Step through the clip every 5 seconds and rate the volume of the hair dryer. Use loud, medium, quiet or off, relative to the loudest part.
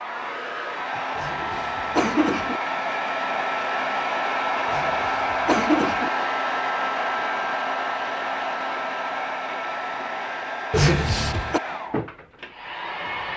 loud, loud, medium.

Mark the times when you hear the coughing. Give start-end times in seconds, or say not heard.
1.1-2.6, 4.7-6.1, 10.7-11.6.